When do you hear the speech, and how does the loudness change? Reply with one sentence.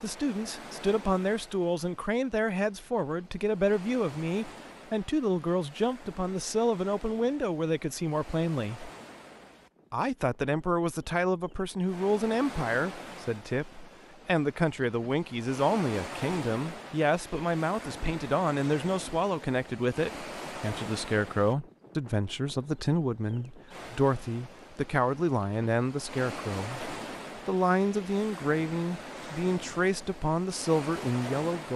The speech can be heard from 0.0 to 8.9 s, at a steady volume; and from 9.9 to 31.7 s, at a steady volume.